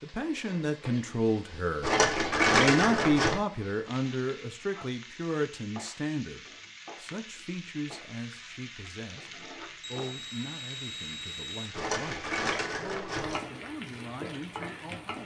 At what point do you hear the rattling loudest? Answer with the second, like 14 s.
3 s.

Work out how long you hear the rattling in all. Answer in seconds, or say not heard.
3 s.